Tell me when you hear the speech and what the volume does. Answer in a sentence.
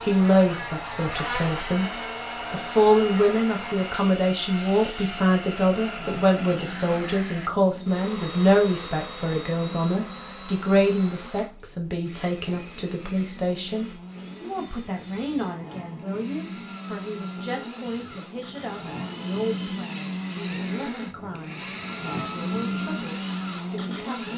The speech can be heard briefly from 0.0 to 1.9 s; and from 2.5 to 24.3 s, getting quieter.